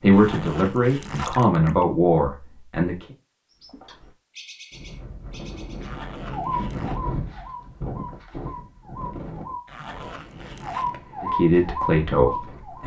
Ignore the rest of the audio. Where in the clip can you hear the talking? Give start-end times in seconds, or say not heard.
0.0-3.0, 11.2-12.8.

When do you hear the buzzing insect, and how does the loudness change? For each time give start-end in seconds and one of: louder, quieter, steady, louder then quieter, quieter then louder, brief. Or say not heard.
not heard.